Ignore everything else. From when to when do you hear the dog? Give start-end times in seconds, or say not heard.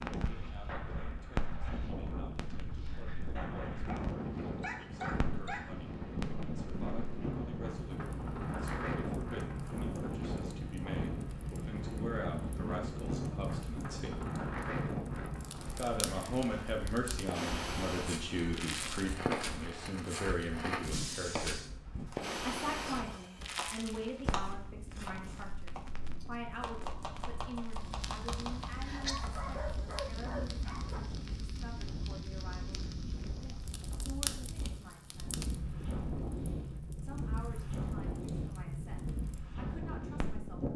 3.9-5.7, 28.9-31.0.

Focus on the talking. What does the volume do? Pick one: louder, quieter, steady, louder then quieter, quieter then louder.
louder then quieter.